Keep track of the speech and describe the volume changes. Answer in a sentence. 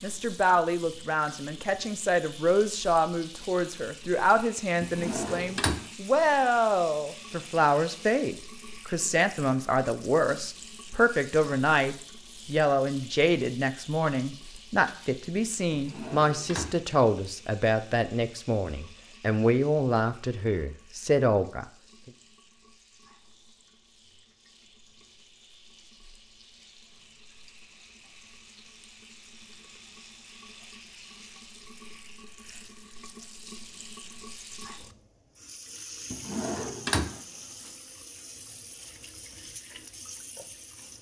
The loudness of the speech stays about the same.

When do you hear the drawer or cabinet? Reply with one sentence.
The drawer or cabinet can be heard from 4.8 to 5.8 s, from 15.7 to 16.8 s and from 36.1 to 37.7 s.